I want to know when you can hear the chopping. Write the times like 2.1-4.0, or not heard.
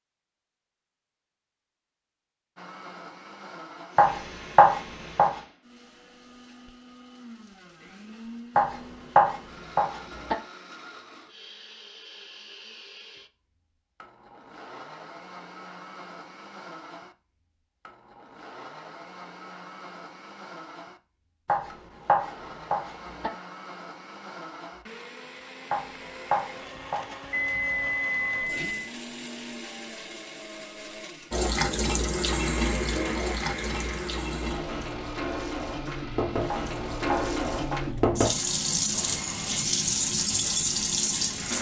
4.0-5.3, 8.6-10.3, 21.4-23.3, 25.7-27.1, 36.5-38.1.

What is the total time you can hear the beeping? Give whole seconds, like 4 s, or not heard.
2 s.